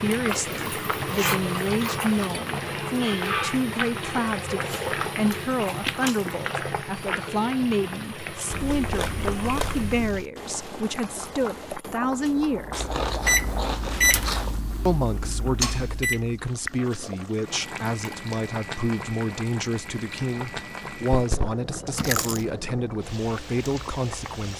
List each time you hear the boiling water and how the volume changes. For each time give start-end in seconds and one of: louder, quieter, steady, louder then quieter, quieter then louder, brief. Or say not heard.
0.0-24.5 quieter.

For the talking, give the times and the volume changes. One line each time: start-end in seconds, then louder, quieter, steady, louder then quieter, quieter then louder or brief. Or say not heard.
0.0-12.9 steady
14.8-24.5 steady.